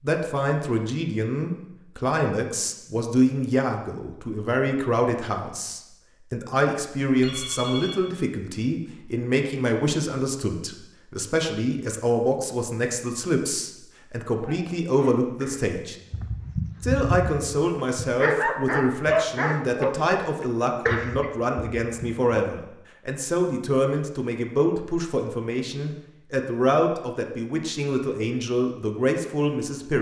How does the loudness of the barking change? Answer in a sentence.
The loudness of the barking goes up.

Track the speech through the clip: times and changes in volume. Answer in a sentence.
The speech can be heard from 0.0 to 15.9 s, at a steady volume; and from 16.8 to 29.9 s, at a steady volume.